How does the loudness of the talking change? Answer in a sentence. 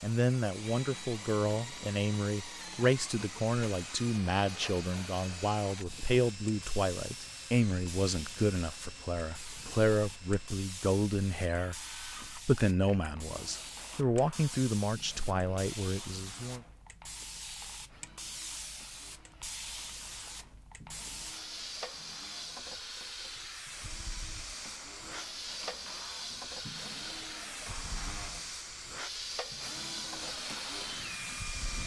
The loudness of the talking stays about the same.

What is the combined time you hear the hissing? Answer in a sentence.
You can hear the hissing for 32 seconds altogether.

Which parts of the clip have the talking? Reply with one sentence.
You can hear the talking from 0.0 to 16.6 s.